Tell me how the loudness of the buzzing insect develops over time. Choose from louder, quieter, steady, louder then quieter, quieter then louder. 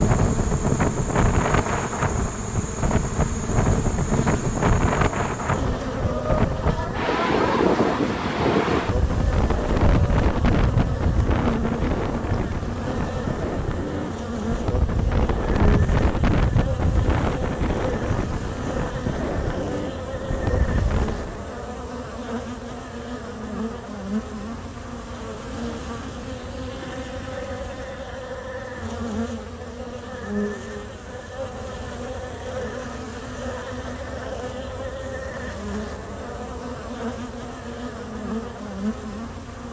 steady.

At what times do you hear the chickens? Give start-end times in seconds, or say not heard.
6.1-8.1.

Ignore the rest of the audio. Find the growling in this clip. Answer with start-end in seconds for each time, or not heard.
not heard.